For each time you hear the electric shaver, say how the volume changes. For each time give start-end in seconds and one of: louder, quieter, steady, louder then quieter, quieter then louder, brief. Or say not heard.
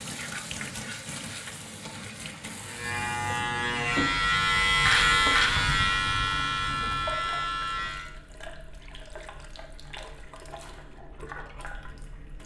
2.6-8.1 louder then quieter.